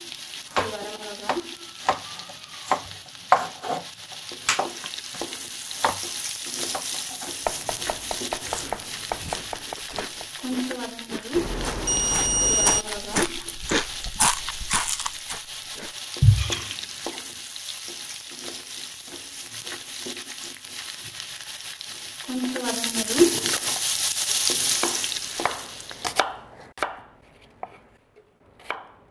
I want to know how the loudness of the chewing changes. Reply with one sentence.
The loudness of the chewing goes up.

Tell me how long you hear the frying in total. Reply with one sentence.
You can hear the frying for 26 seconds altogether.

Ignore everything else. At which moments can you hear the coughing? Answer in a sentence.
You can't hear the coughing here.